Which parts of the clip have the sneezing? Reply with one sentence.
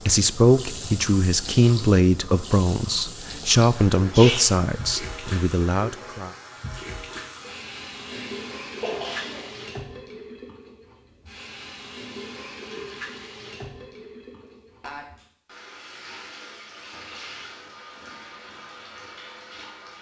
You can hear the sneezing from 4.0 to 4.5 s, from 8.1 to 9.6 s and from 14.8 to 15.2 s.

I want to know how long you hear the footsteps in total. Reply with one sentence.
You can't hear the footsteps here.